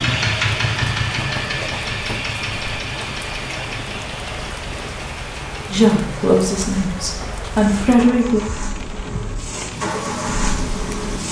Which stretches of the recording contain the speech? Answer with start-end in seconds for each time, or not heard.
5.7-8.4.